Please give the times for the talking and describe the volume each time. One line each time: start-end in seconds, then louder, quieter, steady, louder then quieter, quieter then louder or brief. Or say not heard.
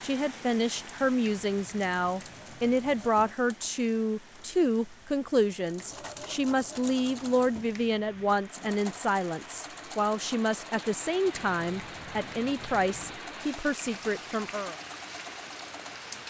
0.0-14.8 steady.